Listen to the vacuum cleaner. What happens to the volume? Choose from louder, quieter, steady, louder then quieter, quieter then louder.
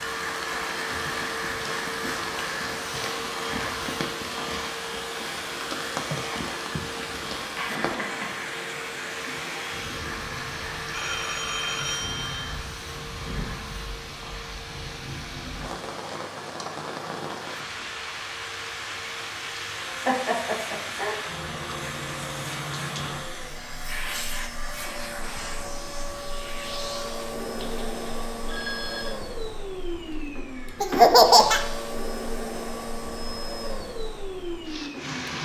quieter then louder.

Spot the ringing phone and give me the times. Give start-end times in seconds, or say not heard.
10.9-12.5, 27.6-29.2.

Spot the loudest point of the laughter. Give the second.
31 s.